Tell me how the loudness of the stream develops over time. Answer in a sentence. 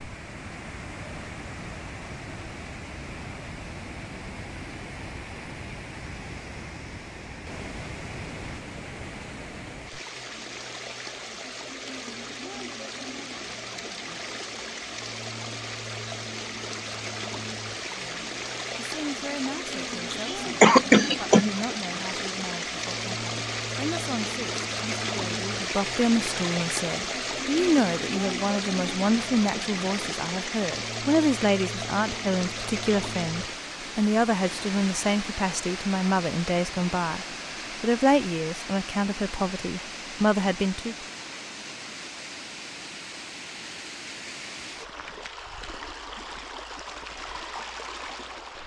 The volume of the stream goes up, then down.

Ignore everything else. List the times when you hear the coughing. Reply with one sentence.
The coughing can be heard from 20.1 to 21.5 s.